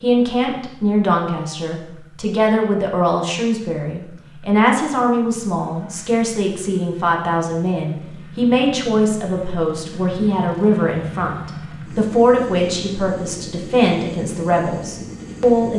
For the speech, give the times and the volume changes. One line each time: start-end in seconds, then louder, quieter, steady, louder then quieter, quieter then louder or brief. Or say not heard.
0.0-15.7 steady.